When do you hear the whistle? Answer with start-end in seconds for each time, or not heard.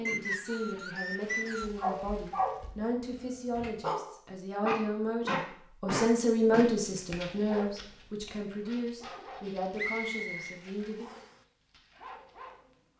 0.1-1.7, 9.8-11.3.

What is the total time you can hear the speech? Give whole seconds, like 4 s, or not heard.
11 s.